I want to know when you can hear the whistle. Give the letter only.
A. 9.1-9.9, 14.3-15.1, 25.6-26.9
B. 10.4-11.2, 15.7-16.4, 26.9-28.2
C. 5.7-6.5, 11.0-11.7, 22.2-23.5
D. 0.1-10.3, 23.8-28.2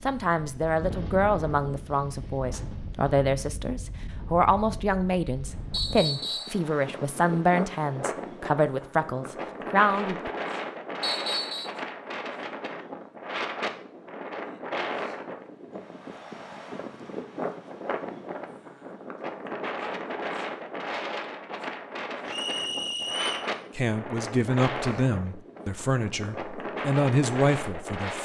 C.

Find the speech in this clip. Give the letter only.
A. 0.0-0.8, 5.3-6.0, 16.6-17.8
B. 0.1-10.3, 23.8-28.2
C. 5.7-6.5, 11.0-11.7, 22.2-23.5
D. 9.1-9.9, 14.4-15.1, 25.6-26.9
B.